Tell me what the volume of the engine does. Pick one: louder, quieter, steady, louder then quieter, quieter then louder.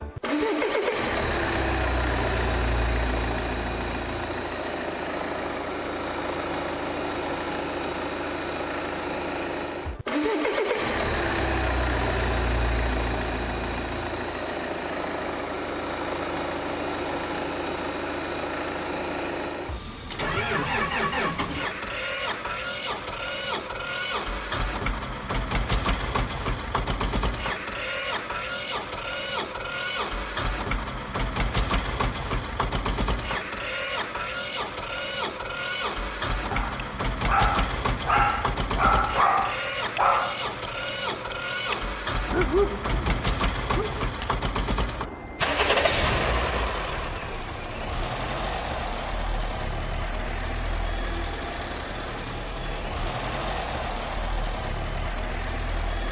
steady.